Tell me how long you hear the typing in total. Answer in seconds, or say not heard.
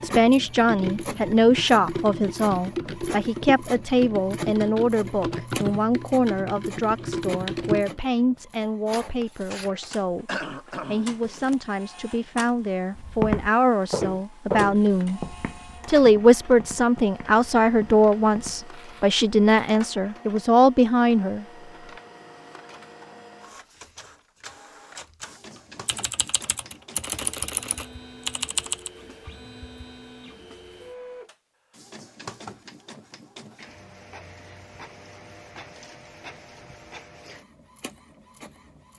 11 s.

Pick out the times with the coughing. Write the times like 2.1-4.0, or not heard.
10.2-11.2.